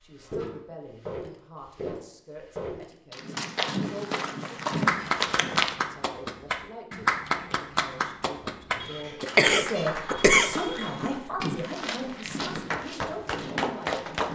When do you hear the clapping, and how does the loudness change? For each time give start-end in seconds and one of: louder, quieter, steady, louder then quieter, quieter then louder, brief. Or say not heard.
4.7-14.3 quieter then louder.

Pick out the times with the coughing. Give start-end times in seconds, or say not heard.
8.8-10.9.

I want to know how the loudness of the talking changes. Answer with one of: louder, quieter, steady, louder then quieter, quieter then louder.
louder then quieter.